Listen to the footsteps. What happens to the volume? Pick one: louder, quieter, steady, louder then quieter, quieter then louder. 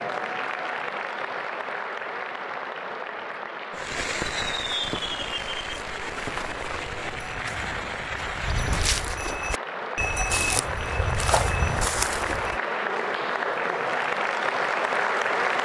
louder.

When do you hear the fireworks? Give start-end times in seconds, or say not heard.
3.7-8.9.